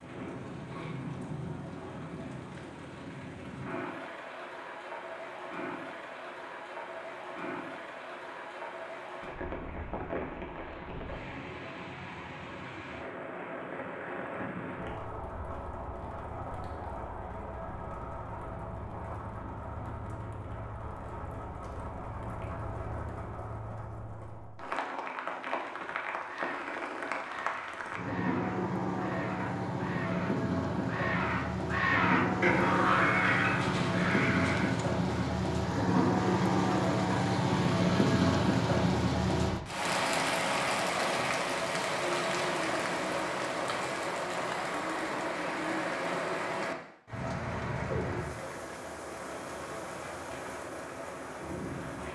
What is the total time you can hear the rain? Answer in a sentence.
You can hear the rain for 52 seconds altogether.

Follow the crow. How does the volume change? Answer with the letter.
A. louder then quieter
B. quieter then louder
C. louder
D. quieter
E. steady
C.